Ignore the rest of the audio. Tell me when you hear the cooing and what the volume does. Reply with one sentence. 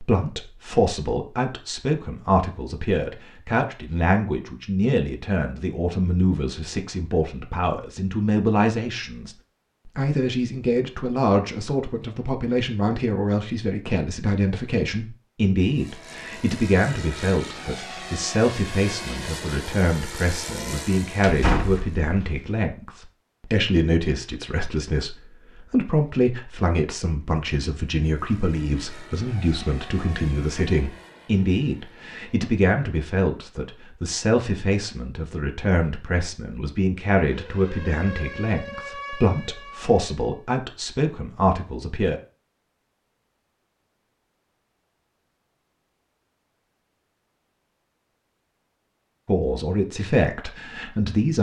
You can't hear the cooing here.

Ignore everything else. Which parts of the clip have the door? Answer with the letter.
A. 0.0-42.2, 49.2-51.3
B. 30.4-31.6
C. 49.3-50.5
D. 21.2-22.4
D.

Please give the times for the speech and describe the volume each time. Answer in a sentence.
You can hear the speech from 0.0 to 42.2 s, at a steady volume; and briefly from 49.2 to 51.3 s.